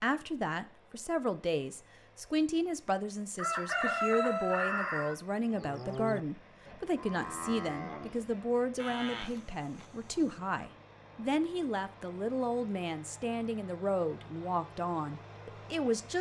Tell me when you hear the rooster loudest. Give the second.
4 s.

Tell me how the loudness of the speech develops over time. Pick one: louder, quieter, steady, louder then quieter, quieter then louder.
steady.